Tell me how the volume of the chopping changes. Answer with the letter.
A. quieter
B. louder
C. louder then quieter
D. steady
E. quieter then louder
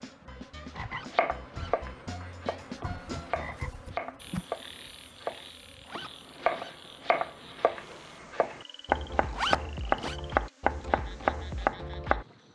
B.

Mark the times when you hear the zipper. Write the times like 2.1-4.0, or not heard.
0.8-1.7, 5.8-6.8, 9.3-10.2.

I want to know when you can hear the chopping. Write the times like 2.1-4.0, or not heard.
1.1-12.2.